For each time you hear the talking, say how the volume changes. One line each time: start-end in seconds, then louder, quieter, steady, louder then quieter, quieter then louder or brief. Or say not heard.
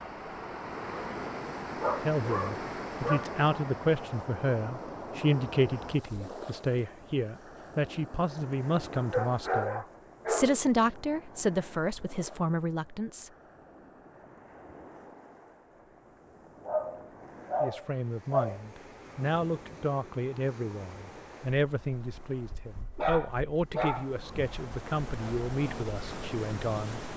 2.0-13.3 steady
17.6-27.0 steady.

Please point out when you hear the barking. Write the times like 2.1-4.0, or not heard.
1.8-3.4, 8.9-10.9, 16.6-18.6, 22.9-24.3.